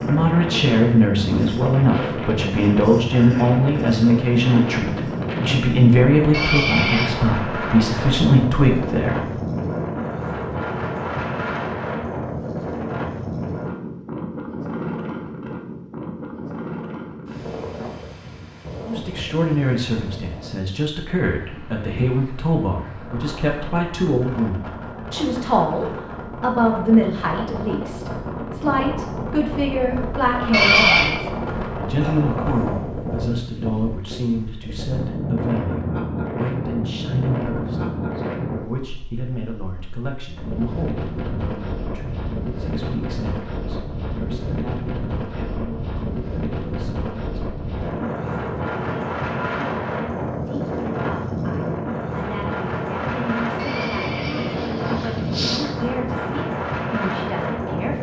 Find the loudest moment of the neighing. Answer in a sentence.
The loudest moment of the neighing is at 31 seconds.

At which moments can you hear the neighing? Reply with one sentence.
The neighing can be heard from 6.3 to 7.1 s, from 30.5 to 31.1 s and from 53.5 to 55.6 s.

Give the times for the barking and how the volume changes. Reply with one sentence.
You can't hear the barking here.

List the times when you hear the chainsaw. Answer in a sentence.
You can't hear the chainsaw here.